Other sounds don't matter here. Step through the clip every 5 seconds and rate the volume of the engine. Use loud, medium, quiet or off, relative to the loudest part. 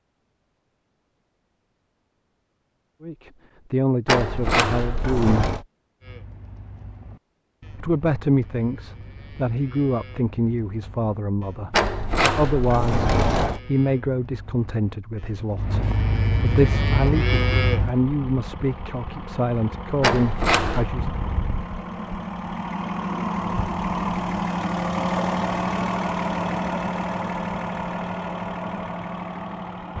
off, off, off, medium, loud, loud.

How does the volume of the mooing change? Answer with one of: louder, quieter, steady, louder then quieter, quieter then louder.
louder.